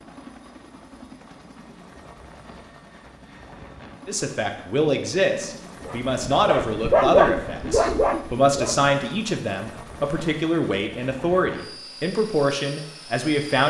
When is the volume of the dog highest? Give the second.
7 s.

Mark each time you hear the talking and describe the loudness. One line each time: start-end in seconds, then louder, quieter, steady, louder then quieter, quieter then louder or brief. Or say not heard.
4.0-13.6 steady.